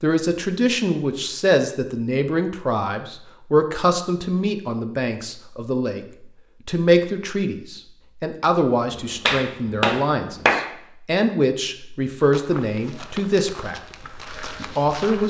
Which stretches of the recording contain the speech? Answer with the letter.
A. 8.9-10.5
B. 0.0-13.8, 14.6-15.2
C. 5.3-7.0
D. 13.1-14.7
B.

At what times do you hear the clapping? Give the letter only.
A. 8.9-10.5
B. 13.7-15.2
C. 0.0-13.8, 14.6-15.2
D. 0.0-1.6
A.